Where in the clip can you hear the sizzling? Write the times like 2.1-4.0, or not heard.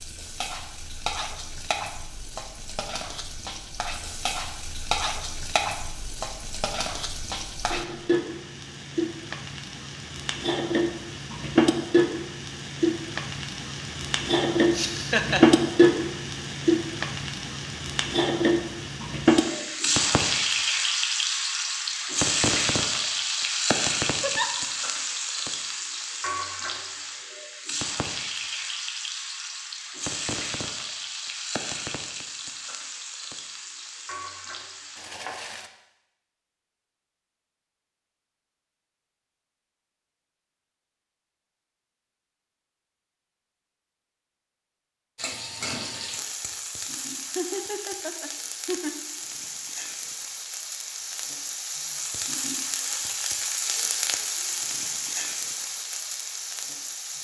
0.0-35.7, 45.1-57.1.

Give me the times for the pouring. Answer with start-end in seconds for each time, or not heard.
not heard.